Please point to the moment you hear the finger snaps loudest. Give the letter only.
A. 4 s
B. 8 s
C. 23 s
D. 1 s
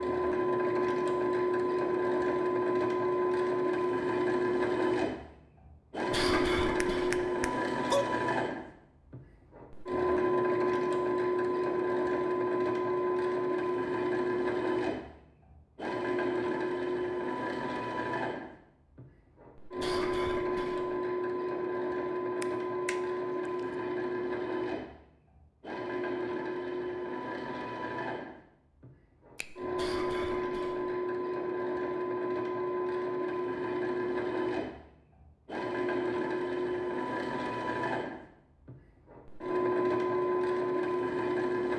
B.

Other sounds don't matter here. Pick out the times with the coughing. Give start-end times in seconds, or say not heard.
6.1-7.2, 19.8-20.9, 29.8-30.9.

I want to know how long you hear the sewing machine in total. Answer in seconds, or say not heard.
42 s.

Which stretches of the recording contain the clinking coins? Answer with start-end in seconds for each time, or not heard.
not heard.